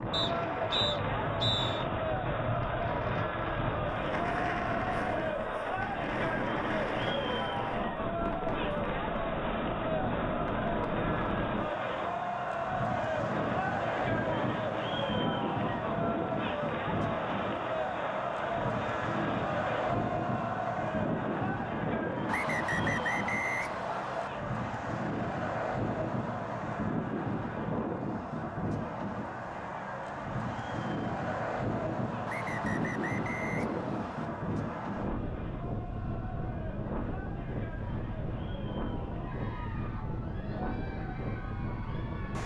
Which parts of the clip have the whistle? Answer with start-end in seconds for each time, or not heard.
0.1-1.9, 22.2-24.3, 32.2-34.3.